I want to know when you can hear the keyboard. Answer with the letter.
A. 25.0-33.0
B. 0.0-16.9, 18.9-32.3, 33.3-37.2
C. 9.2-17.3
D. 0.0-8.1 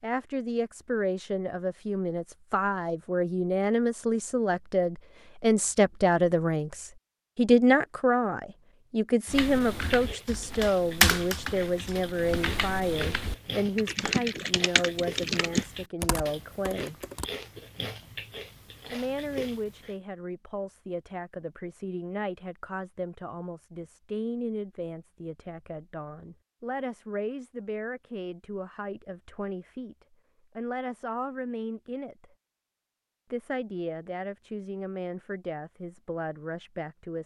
C.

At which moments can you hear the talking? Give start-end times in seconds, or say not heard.
0.0-16.9, 18.9-32.3, 33.3-37.2.